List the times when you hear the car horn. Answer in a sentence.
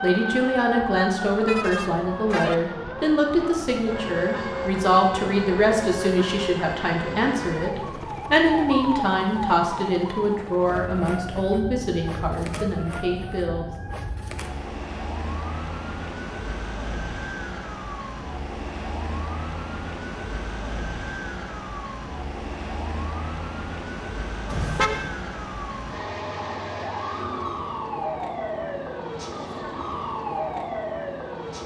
The car horn can be heard from 1.4 to 2.5 s and from 24.4 to 25.1 s.